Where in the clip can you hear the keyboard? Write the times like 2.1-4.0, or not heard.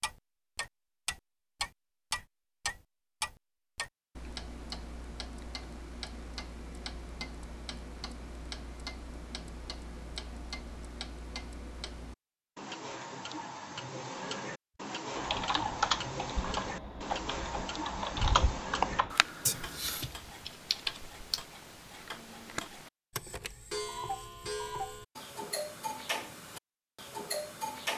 15.2-21.4.